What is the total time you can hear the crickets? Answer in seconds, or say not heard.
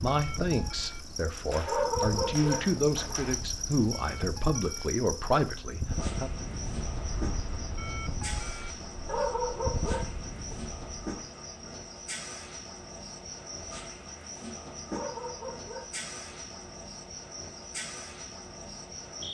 19 s.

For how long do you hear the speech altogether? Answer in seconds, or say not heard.
6 s.